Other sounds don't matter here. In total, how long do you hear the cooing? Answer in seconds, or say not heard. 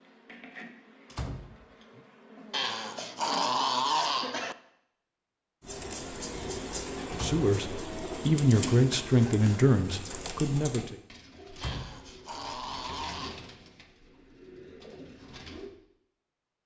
10 s.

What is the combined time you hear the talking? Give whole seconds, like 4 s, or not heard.
4 s.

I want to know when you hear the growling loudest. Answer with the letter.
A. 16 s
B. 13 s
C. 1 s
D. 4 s
D.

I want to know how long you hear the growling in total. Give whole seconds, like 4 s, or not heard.
4 s.